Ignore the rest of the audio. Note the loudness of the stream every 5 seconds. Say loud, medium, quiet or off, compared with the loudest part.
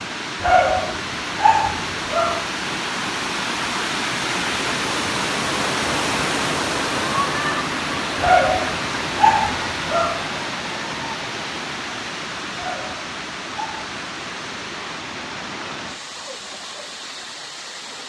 loud, loud, medium, medium.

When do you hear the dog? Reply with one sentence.
The dog can be heard from 0.4 to 2.5 s, from 8.2 to 10.3 s and from 12.6 to 13.9 s.